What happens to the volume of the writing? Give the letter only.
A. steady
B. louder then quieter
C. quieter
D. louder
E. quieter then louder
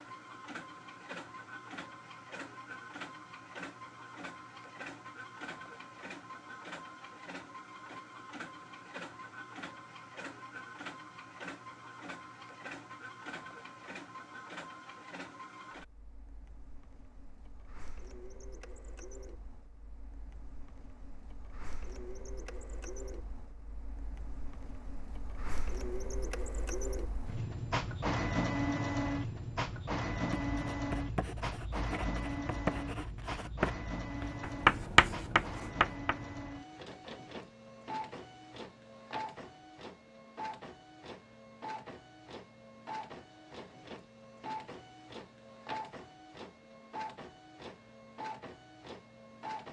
B.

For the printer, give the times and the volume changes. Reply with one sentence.
You can hear the printer from 0.0 to 49.6 s, getting louder then quieter.